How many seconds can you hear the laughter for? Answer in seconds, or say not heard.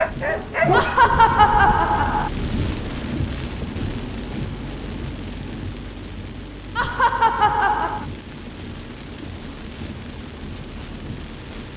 3 s.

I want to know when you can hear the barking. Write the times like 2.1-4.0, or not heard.
0.0-1.9.